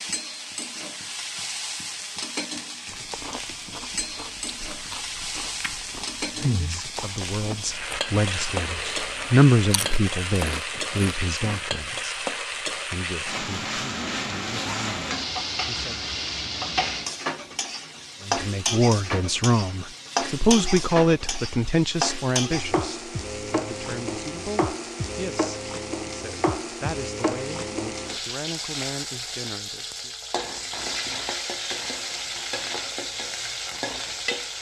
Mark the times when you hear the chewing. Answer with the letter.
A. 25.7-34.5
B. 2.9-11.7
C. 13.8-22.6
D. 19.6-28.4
B.